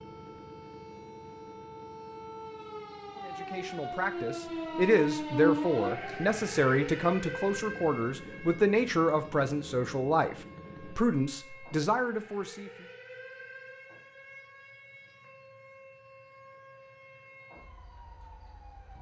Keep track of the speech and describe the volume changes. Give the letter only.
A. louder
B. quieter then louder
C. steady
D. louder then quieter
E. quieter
C.